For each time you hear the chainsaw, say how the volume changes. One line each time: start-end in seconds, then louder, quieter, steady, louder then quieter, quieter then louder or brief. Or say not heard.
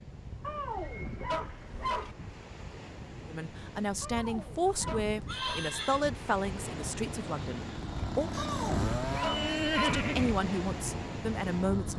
6.5-11.9 louder then quieter.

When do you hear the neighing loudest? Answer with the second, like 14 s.
10 s.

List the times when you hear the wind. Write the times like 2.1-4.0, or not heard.
0.0-11.9.